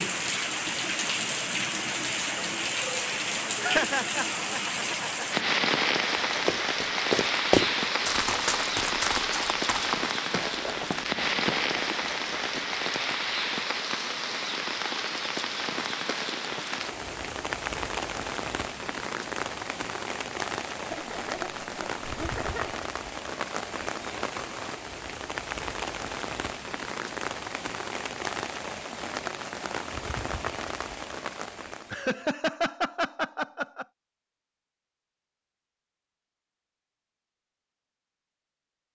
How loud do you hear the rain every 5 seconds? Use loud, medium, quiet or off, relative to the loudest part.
loud, loud, loud, medium, medium, medium, medium, off.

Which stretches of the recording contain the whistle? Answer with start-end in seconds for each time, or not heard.
not heard.